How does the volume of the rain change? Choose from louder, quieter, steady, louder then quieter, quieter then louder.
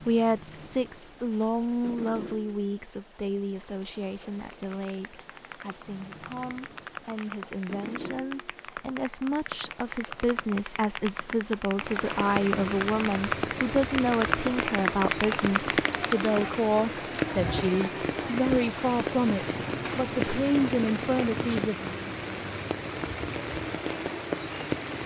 louder.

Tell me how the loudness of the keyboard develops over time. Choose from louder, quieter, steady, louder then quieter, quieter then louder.
louder.